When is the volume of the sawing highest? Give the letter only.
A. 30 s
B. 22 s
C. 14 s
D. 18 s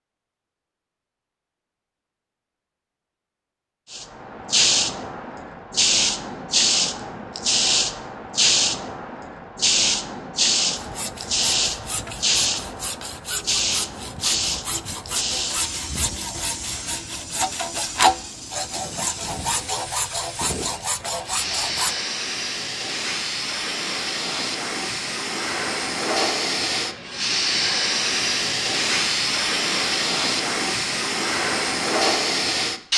D.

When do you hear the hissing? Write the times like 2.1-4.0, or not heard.
3.9-32.9.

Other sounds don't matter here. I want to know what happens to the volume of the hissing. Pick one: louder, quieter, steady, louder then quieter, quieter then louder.
quieter then louder.